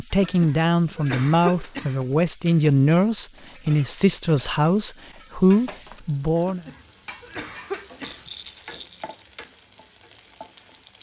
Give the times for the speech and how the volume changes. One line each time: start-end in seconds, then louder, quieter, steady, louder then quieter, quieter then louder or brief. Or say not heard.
0.0-6.7 steady.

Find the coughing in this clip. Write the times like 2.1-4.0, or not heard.
0.1-2.0, 6.3-8.3.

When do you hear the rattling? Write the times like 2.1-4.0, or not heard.
8.0-9.2.